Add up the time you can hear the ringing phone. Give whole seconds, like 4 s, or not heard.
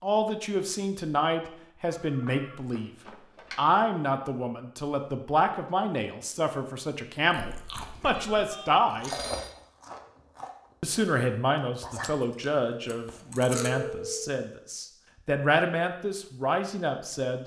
4 s.